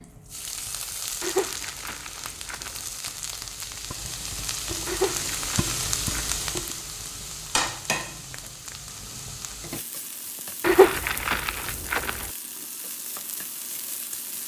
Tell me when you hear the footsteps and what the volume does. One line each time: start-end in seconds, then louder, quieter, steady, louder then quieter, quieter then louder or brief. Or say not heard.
not heard.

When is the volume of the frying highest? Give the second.
6 s.